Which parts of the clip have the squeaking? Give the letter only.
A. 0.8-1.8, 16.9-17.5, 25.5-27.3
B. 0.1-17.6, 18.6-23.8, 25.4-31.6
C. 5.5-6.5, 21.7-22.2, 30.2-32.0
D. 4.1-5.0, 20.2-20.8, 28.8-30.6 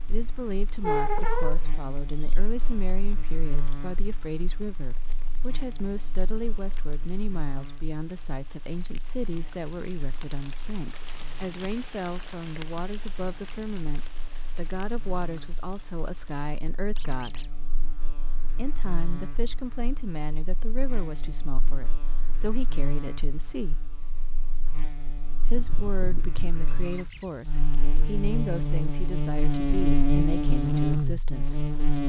A.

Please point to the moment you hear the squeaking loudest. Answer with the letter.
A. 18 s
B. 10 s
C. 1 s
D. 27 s
C.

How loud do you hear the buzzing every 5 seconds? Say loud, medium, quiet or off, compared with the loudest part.
quiet, quiet, quiet, quiet, quiet, medium, loud.